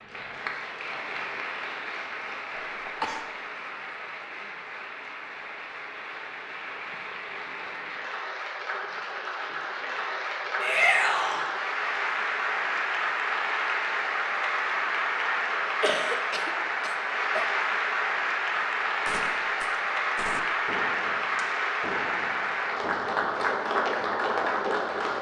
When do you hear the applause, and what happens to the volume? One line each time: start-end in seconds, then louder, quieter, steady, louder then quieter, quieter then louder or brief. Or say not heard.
0.0-25.1 louder.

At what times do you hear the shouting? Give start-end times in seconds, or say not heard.
10.6-11.4.